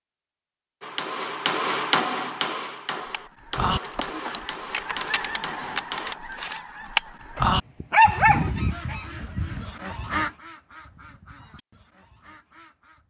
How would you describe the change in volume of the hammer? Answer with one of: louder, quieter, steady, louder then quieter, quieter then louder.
quieter.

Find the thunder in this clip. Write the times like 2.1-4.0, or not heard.
not heard.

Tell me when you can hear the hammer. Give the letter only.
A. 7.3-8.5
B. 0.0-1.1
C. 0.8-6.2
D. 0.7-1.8
C.